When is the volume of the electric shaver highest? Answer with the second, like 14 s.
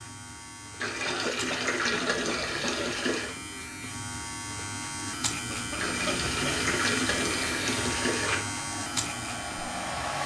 7 s.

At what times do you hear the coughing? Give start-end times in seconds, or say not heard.
1.1-3.0, 5.5-6.6.